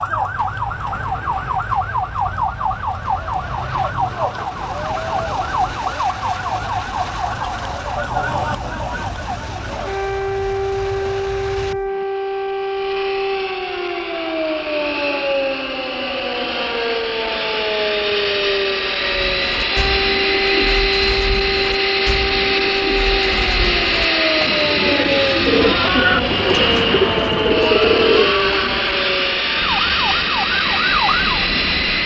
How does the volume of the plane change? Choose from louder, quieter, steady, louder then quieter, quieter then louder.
louder.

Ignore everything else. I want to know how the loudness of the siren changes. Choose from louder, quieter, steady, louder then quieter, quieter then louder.
steady.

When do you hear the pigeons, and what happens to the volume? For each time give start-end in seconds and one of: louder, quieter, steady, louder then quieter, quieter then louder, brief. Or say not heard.
19.1-29.1 louder.